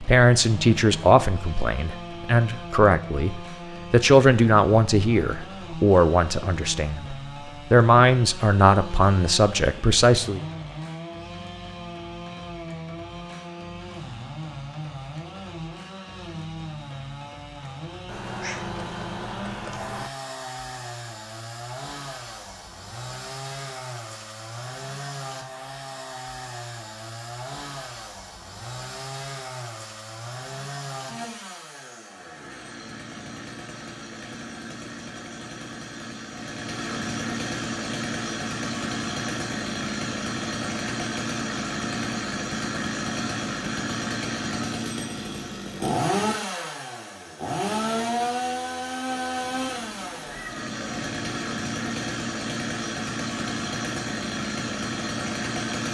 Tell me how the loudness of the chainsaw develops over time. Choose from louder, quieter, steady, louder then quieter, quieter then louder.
louder.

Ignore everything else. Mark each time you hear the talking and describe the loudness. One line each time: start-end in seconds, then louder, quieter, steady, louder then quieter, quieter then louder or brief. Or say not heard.
0.0-10.4 steady.